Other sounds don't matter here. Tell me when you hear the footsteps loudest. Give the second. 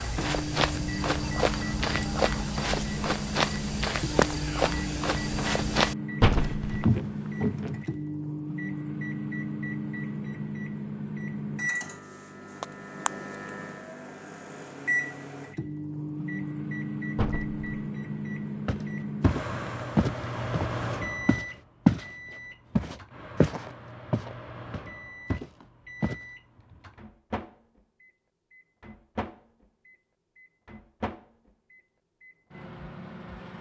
22 s.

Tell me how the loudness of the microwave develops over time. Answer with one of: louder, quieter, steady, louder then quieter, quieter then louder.
quieter.